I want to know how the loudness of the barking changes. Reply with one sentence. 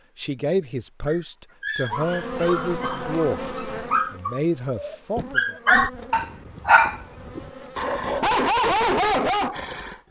The volume of the barking goes up.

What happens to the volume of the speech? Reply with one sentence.
The volume of the speech goes down, then up.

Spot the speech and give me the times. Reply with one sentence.
The speech can be heard from 0.1 to 5.5 s.